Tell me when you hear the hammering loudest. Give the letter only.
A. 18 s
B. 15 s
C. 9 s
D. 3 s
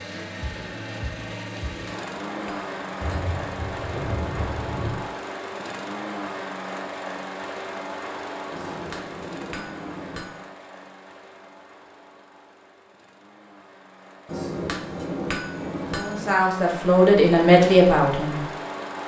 B.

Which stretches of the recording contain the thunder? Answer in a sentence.
The thunder can be heard from 3.0 to 5.0 s.